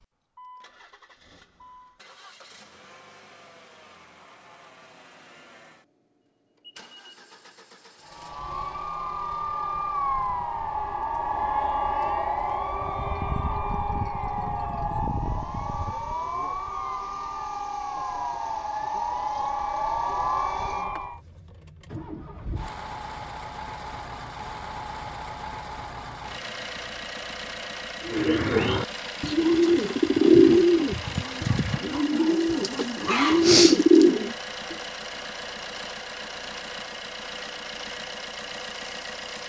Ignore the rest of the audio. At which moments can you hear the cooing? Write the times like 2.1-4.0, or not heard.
28.1-34.8.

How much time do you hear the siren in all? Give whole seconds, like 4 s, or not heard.
13 s.